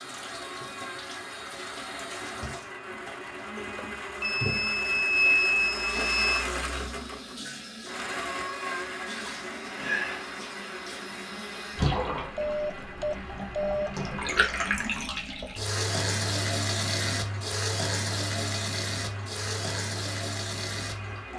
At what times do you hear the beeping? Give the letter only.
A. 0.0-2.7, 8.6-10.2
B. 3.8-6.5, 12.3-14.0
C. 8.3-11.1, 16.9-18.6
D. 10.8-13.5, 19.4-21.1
B.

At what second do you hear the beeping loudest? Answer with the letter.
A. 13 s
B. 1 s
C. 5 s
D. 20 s
C.